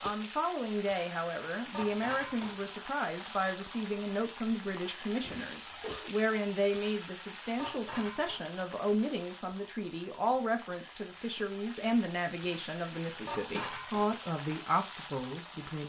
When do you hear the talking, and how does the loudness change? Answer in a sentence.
The talking can be heard from 0.0 to 15.8 s, at a steady volume.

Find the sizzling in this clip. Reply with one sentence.
The sizzling can be heard from 0.0 to 15.8 s.